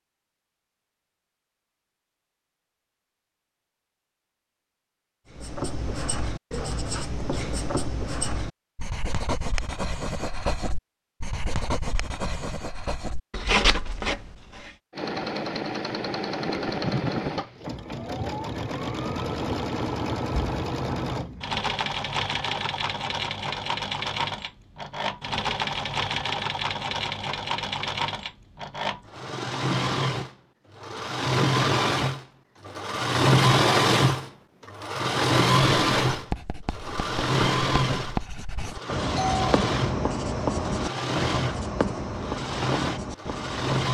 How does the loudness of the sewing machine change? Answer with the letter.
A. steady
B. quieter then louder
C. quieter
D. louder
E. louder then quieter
E.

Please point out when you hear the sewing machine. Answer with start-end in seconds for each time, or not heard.
14.9-43.8.